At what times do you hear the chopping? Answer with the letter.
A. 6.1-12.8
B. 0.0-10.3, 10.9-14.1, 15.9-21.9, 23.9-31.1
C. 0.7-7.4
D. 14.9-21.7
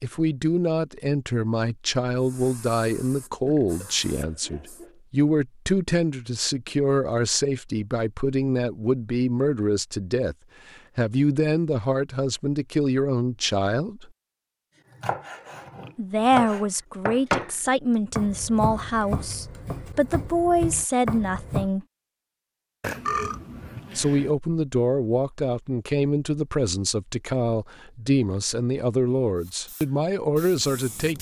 D.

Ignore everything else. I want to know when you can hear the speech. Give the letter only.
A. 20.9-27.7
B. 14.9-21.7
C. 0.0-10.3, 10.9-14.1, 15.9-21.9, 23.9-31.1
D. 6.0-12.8
C.